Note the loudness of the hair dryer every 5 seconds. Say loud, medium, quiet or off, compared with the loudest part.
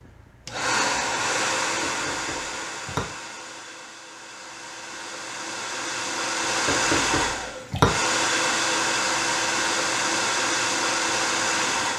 medium, loud, loud.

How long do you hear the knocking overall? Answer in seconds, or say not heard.
2 s.